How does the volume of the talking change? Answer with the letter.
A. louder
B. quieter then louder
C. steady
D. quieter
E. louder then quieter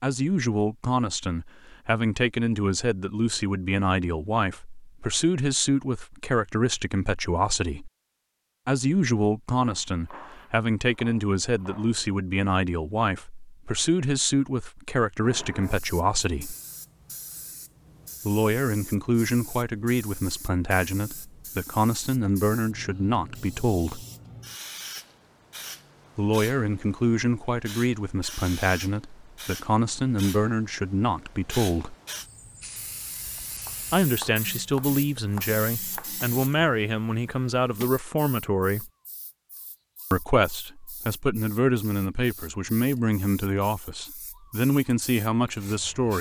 C.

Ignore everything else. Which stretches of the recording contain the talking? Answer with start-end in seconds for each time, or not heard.
0.0-7.9, 8.7-16.6, 18.2-24.1, 26.1-31.9, 33.9-38.9, 40.1-46.1.